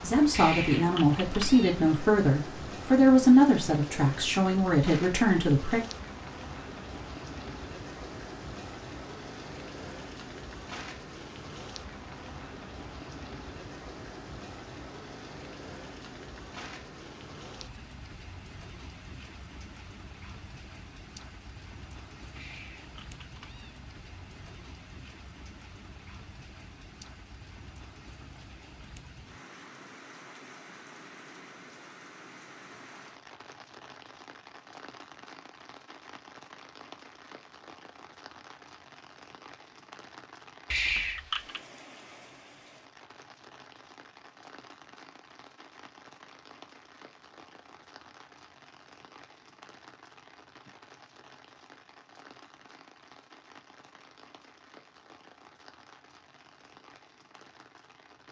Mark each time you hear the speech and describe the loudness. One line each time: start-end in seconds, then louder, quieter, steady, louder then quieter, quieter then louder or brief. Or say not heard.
0.0-5.8 louder then quieter.